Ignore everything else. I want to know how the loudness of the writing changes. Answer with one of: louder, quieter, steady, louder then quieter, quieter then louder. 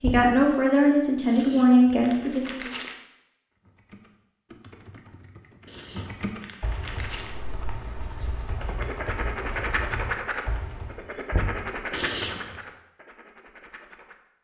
louder then quieter.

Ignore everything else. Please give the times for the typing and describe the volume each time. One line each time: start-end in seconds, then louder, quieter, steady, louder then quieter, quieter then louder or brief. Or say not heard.
3.5-11.1 louder.